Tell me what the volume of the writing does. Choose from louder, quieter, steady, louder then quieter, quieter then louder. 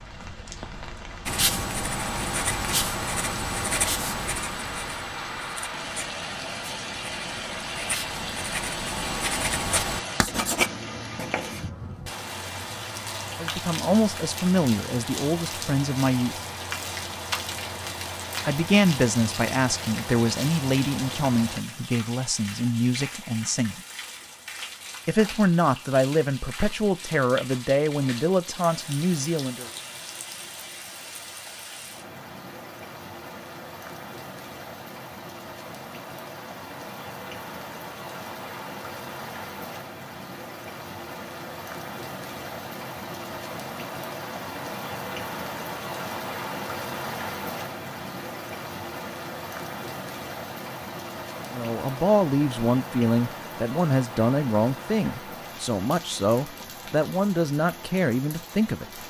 quieter then louder.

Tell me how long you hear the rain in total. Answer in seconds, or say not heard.
59 s.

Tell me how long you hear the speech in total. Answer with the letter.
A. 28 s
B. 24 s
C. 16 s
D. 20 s
D.